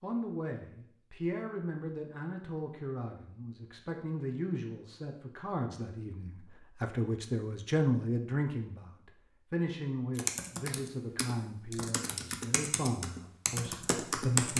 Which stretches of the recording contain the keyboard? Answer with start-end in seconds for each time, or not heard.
10.2-14.5.